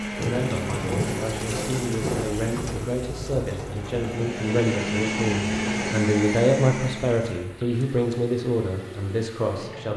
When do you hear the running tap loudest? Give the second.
1 s.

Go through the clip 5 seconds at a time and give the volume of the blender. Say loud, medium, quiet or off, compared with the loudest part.
medium, loud.